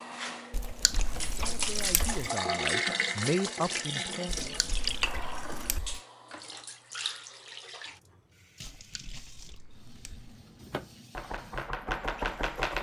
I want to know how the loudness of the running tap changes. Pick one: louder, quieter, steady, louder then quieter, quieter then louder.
quieter.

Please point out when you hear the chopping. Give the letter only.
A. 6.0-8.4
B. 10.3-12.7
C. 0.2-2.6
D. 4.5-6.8
B.